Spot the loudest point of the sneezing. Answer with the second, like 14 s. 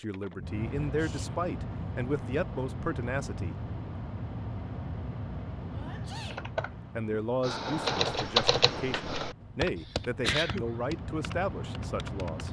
10 s.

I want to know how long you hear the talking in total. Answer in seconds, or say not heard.
9 s.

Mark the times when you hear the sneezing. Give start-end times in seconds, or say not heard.
0.8-1.4, 5.7-6.5, 9.8-10.7.